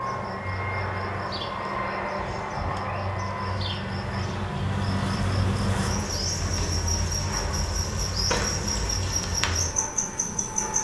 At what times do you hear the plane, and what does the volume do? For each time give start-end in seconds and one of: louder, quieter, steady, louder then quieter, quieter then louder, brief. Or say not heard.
0.0-10.7 quieter.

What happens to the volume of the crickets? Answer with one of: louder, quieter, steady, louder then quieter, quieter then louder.
louder.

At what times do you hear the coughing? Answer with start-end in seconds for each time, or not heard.
not heard.